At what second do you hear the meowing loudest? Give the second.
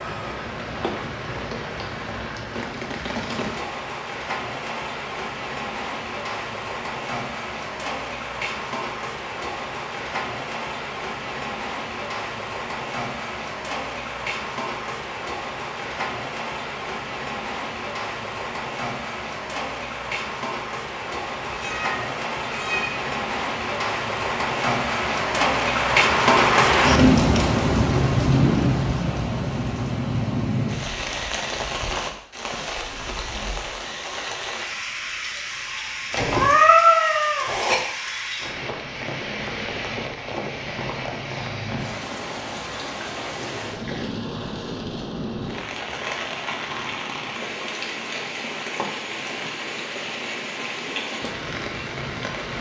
37 s.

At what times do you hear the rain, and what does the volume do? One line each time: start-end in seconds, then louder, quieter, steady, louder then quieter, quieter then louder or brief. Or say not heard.
0.0-52.5 louder then quieter.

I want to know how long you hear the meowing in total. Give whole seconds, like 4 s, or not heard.
3 s.